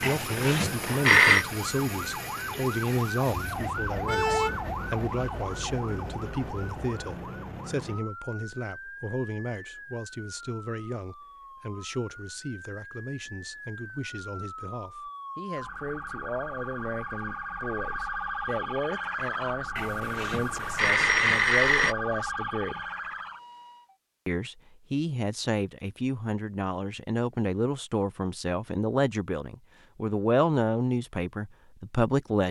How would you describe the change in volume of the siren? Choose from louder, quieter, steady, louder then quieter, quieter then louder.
quieter then louder.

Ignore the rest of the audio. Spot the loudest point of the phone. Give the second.
1 s.